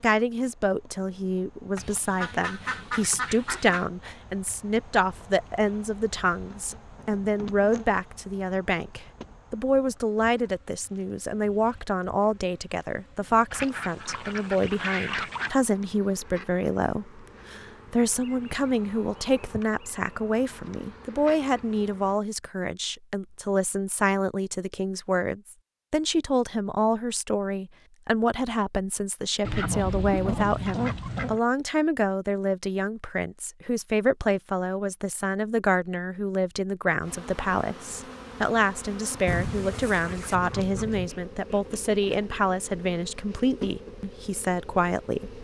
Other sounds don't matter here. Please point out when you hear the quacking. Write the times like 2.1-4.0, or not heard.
1.8-3.9, 13.5-15.5, 29.4-31.4, 39.2-41.1.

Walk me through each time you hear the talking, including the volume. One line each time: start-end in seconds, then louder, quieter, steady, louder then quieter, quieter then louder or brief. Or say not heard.
0.0-45.3 steady.